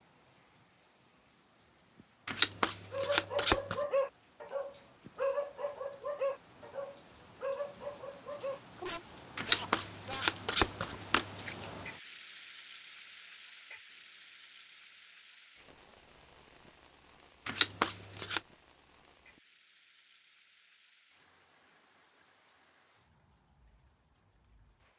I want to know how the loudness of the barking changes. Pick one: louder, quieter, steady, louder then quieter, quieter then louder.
quieter.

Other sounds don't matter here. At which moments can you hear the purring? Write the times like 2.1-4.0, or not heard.
not heard.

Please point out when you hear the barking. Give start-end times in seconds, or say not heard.
2.9-10.2.